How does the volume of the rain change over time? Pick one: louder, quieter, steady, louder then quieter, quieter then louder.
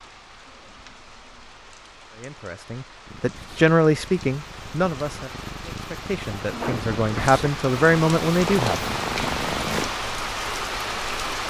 louder.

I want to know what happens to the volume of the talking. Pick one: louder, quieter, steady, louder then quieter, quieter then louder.
quieter then louder.